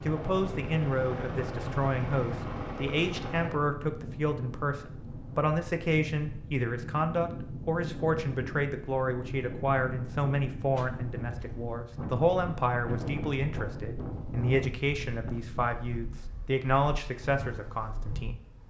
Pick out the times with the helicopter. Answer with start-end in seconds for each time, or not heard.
0.0-3.5.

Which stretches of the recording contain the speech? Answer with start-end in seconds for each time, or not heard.
0.1-18.4.